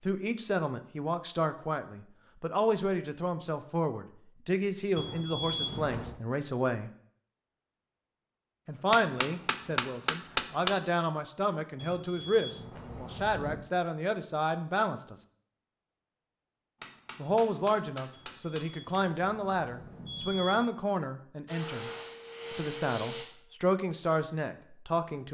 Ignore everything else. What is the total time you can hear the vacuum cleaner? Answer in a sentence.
You can hear the vacuum cleaner for 2 seconds altogether.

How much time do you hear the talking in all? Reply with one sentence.
The talking can be heard for 21 seconds in total.